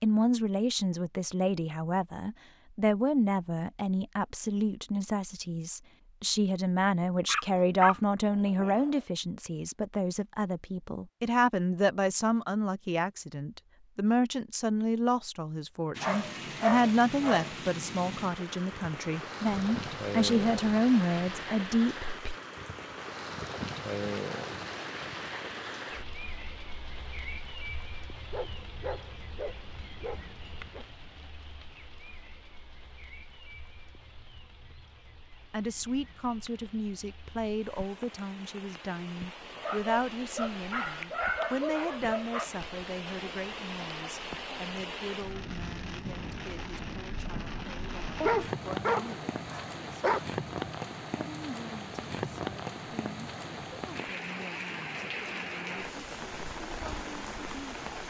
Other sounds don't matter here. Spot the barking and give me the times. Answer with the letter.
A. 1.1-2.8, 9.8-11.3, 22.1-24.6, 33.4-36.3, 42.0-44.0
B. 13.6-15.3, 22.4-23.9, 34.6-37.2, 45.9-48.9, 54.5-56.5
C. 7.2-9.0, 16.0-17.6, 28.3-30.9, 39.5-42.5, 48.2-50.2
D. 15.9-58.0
C.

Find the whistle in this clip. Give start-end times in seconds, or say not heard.
not heard.